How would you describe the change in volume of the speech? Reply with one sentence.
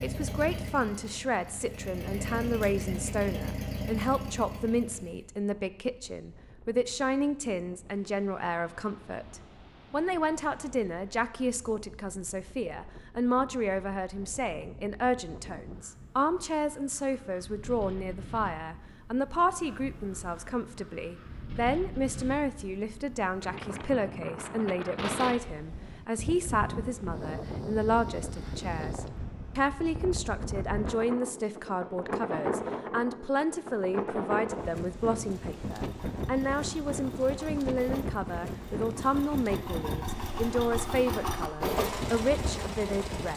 The loudness of the speech stays about the same.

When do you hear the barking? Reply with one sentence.
You can't hear the barking here.